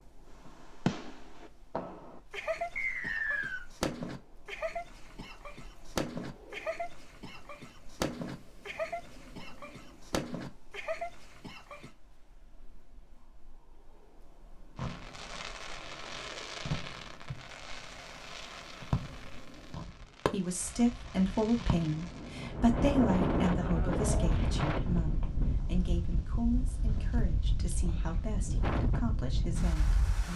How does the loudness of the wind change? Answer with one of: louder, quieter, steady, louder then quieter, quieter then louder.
louder.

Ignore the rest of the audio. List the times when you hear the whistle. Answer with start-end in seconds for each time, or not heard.
2.8-3.6.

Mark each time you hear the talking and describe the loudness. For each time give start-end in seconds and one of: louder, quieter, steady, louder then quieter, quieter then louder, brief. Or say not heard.
20.3-30.3 quieter.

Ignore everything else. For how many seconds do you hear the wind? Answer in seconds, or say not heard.
30 s.